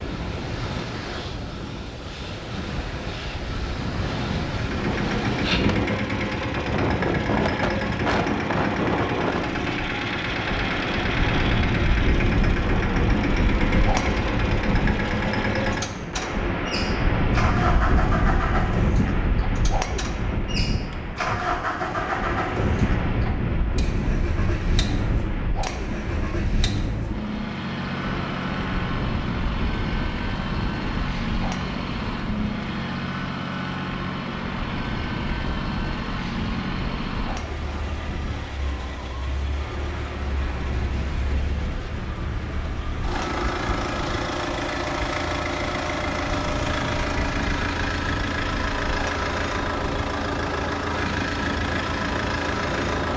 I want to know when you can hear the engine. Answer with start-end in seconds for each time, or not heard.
4.5-53.1.